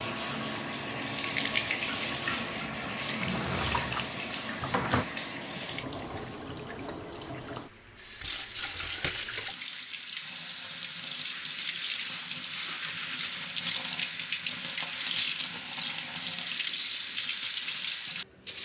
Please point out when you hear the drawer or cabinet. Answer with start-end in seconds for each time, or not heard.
3.2-5.0.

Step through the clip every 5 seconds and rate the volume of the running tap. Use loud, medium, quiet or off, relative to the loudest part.
loud, medium, loud, loud.